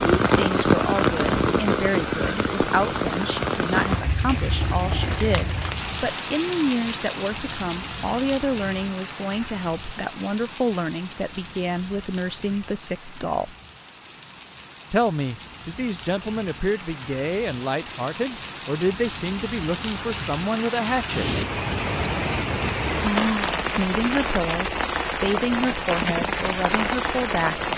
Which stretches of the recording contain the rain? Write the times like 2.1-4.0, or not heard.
0.0-27.7.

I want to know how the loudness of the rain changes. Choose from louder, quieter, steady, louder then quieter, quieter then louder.
quieter then louder.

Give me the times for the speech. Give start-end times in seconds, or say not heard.
0.1-13.6, 14.9-21.4, 23.7-27.7.